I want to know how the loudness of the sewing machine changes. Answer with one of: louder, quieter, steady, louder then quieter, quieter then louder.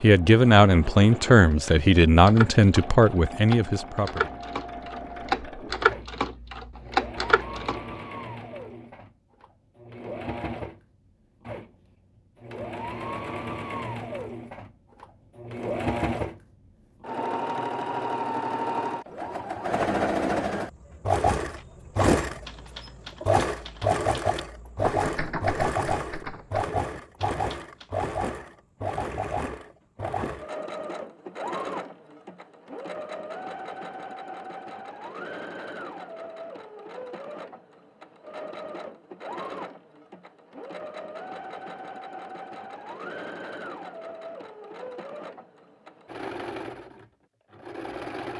louder then quieter.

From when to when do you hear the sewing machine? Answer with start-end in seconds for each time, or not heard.
0.0-48.3.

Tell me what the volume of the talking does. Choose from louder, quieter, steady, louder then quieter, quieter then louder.
quieter.